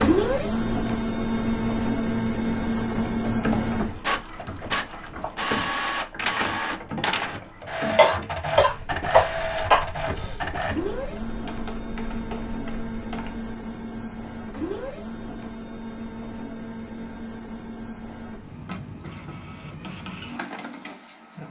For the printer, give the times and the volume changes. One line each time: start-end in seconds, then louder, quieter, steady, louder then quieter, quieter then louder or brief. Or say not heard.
0.0-21.4 quieter.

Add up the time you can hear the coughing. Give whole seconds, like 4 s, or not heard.
2 s.